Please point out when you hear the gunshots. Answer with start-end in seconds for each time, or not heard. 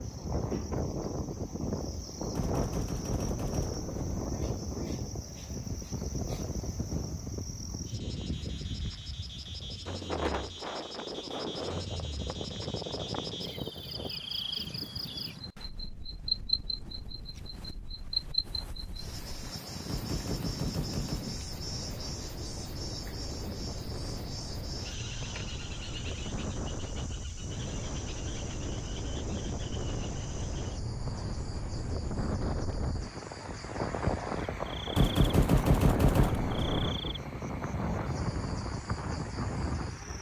2.4-4.2, 19.9-21.8, 35.0-36.9.